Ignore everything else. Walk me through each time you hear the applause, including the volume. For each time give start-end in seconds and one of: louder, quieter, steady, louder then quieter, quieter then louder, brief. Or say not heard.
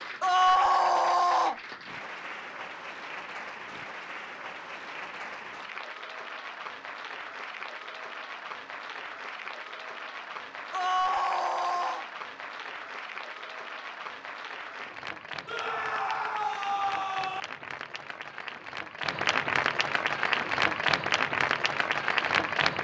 0.0-22.7 louder.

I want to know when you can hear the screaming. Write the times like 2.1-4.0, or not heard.
0.2-1.6, 10.7-12.1, 15.4-17.4.